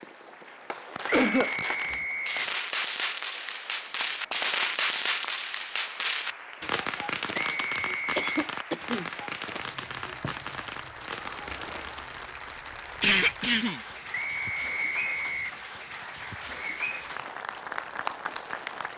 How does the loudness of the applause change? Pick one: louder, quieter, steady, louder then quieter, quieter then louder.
louder.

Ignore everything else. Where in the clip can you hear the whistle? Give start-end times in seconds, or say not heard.
1.3-2.5, 7.3-8.2, 14.1-15.6.